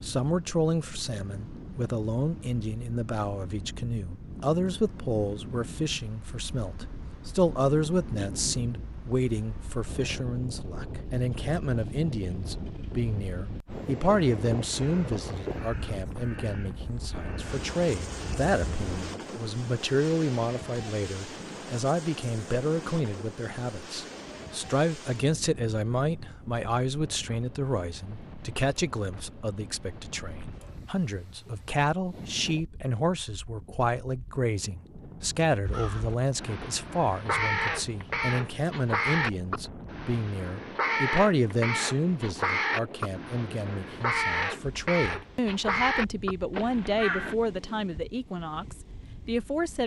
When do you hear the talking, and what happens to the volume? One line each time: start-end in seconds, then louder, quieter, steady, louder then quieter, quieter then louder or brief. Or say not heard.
0.0-49.8 steady.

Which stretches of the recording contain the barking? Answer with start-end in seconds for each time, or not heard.
not heard.